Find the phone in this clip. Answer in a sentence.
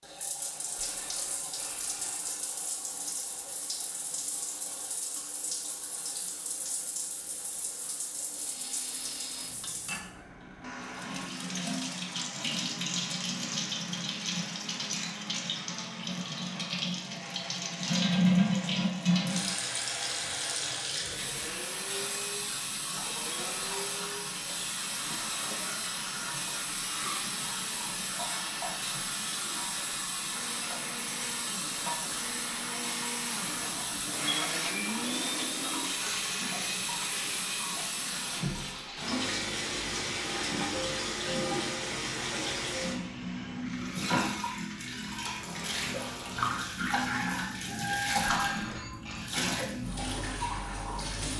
You can hear the phone from 0.8 to 2.5 s and from 48.2 to 49.4 s.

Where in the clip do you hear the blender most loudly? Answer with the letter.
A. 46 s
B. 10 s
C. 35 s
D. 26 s
C.